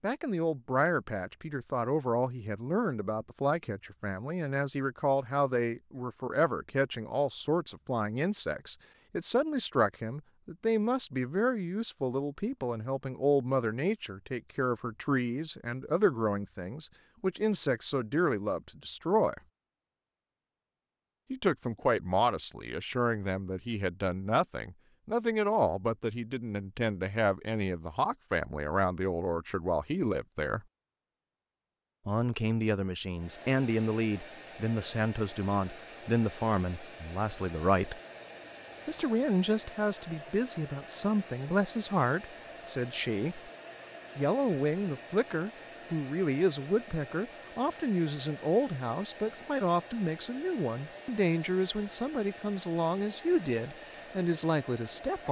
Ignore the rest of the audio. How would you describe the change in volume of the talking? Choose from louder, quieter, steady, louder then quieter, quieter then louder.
steady.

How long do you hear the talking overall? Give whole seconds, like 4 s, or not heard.
50 s.